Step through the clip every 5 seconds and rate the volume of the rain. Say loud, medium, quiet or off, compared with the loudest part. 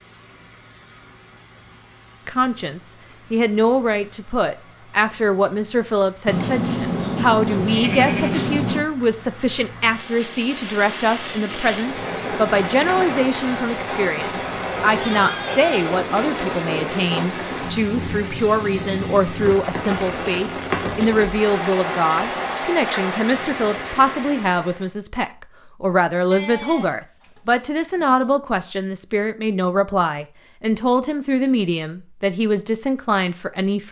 quiet, quiet, loud, loud, loud, off, off.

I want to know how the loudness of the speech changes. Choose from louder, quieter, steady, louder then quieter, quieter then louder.
steady.